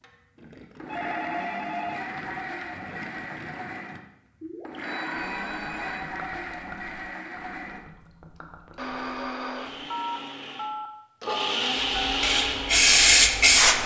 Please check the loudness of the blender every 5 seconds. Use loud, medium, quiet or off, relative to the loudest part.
medium, medium, loud.